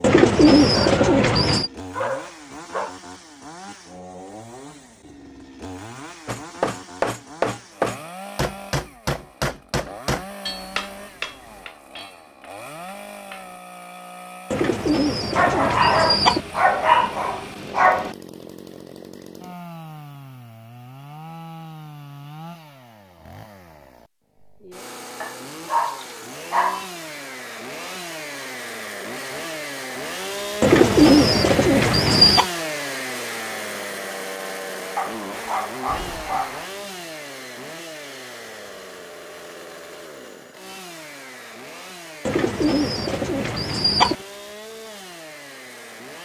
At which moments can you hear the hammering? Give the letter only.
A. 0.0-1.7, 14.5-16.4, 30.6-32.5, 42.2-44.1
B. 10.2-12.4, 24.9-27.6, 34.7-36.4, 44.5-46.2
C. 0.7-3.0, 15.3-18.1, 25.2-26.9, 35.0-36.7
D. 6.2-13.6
D.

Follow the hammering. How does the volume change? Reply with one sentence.
The volume of the hammering goes down.